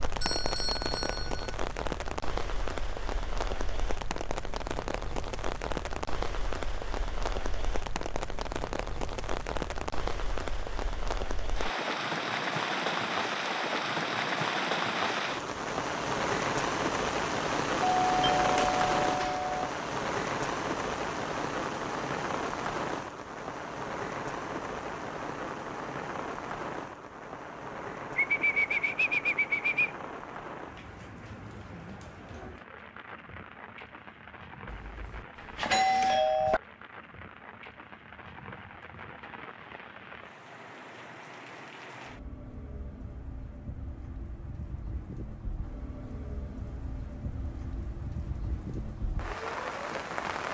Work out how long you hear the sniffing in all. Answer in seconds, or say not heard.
2 s.